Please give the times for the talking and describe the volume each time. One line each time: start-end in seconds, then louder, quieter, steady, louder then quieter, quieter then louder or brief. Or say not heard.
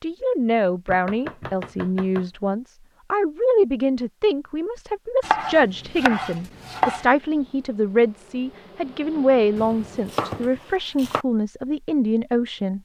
0.0-12.8 steady.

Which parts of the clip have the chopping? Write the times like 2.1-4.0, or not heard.
0.8-2.3, 5.2-7.0, 9.6-11.2.